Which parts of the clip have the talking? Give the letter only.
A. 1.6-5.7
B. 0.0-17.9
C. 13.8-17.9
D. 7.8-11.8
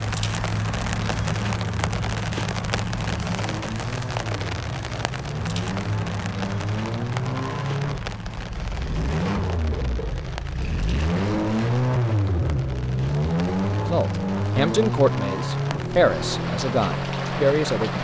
C.